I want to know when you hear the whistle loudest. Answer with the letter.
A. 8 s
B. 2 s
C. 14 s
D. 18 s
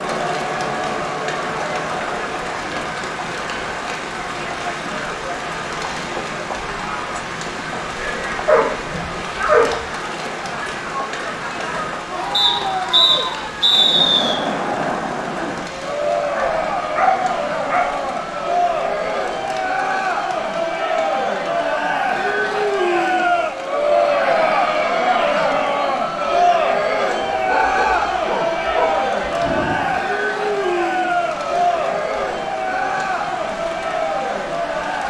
C.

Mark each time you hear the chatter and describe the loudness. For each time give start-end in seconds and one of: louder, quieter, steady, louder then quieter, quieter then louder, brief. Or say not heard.
0.0-35.0 louder.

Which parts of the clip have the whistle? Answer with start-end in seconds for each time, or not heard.
12.3-14.3.